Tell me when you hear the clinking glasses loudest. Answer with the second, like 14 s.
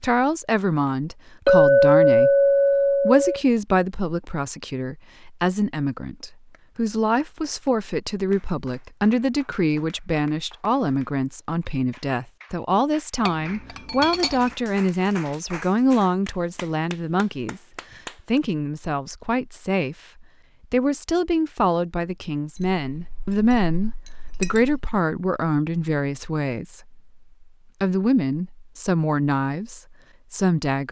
2 s.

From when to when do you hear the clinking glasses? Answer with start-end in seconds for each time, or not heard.
1.4-3.4, 13.2-14.5, 22.6-24.9.